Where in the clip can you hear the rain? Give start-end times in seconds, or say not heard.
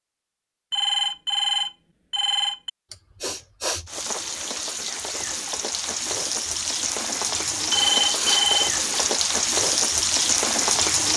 3.9-11.1.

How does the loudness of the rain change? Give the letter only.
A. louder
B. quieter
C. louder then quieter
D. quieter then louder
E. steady
A.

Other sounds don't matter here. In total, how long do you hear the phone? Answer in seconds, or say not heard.
3 s.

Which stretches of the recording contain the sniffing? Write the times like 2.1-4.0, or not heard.
2.9-3.9, 7.7-9.2.